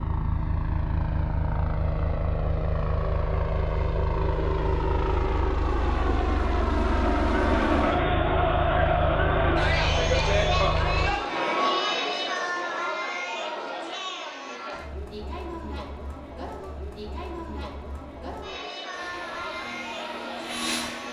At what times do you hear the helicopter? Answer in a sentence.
You can hear the helicopter from 0.0 to 11.2 s and from 18.9 to 21.0 s.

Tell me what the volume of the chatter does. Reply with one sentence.
The loudness of the chatter goes down.